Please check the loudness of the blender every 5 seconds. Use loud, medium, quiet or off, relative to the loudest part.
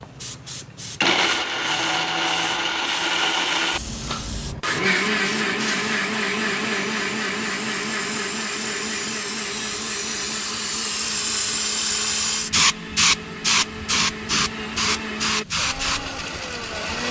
loud, loud, medium, medium.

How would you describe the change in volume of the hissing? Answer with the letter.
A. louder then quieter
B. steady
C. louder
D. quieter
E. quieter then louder
C.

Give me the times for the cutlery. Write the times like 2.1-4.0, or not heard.
not heard.